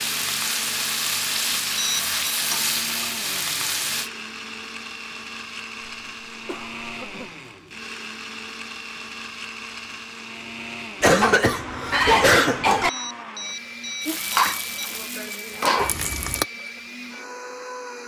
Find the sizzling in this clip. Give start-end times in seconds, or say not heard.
0.0-4.1, 14.0-16.4.